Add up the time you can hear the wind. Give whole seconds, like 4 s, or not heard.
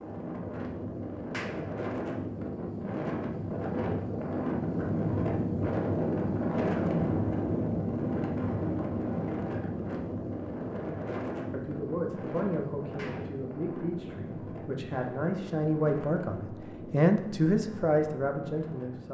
19 s.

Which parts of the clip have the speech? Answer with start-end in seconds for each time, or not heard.
11.5-19.0.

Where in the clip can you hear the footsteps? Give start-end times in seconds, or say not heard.
not heard.